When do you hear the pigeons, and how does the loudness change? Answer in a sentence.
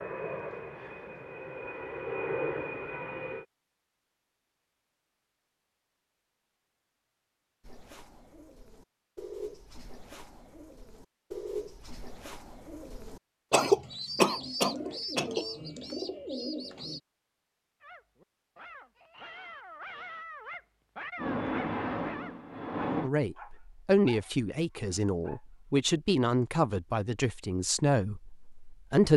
The pigeons can be heard from 7.6 to 17.0 s, getting louder.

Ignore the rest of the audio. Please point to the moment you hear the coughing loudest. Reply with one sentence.
The volume of the coughing peaks at 14 seconds.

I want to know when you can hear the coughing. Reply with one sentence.
The coughing can be heard from 13.5 to 15.4 s.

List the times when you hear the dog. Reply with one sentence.
The dog can be heard from 17.8 to 25.4 s.